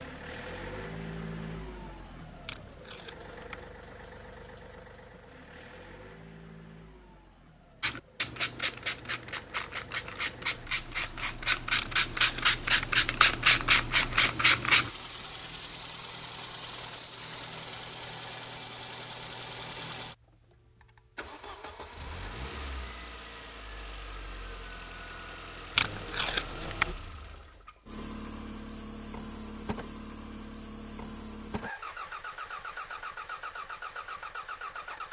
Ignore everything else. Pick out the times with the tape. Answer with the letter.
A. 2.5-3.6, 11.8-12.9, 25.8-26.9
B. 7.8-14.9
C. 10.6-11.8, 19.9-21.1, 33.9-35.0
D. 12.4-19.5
A.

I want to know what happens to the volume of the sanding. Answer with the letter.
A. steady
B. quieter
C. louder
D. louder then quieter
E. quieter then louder
C.